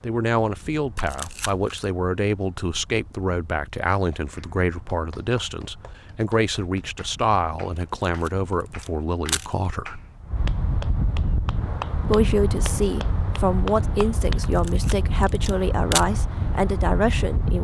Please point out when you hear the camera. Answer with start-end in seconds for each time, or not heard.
0.9-1.9, 7.8-9.5, 14.4-16.1.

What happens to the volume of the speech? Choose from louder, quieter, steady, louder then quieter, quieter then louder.
steady.